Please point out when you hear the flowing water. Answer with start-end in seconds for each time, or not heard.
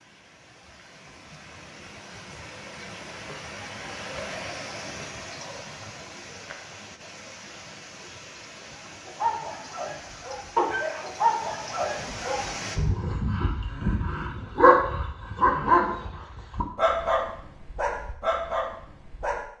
0.0-12.8.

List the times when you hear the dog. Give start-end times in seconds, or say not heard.
9.1-19.4.